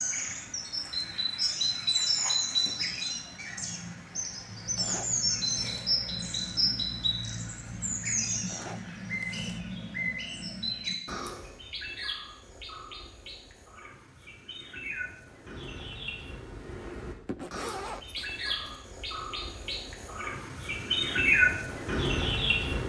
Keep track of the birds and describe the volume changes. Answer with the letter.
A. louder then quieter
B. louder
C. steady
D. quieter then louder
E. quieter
D.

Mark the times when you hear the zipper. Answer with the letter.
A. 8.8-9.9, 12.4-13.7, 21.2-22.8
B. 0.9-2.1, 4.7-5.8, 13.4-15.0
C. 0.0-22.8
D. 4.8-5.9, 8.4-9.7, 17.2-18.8
D.